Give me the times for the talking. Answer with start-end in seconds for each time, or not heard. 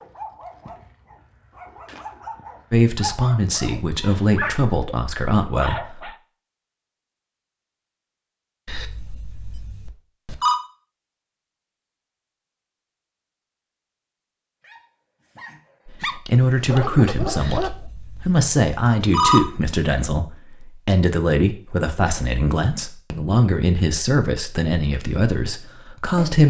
2.7-6.1, 15.8-26.4.